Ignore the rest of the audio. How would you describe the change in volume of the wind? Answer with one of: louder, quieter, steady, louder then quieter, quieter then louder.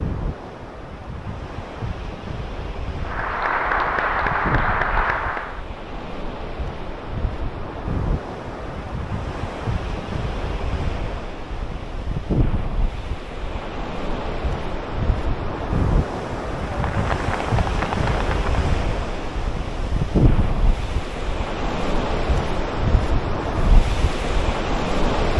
louder.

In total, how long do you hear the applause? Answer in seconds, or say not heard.
5 s.